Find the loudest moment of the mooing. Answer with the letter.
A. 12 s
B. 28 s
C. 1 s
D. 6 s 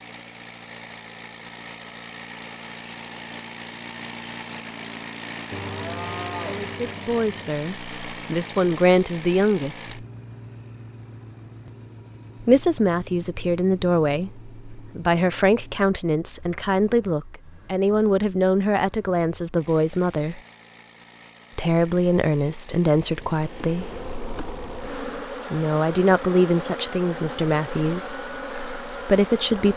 D.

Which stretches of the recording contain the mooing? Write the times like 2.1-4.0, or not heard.
5.5-7.5.